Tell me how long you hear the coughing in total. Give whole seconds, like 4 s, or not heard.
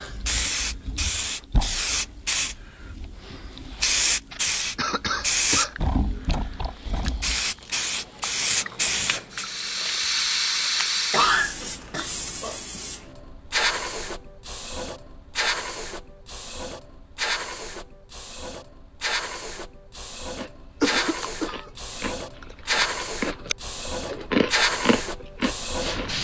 4 s.